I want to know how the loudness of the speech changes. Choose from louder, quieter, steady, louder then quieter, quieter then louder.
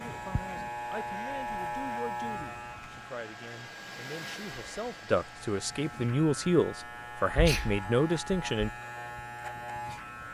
louder.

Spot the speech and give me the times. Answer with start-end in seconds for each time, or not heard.
0.0-8.7.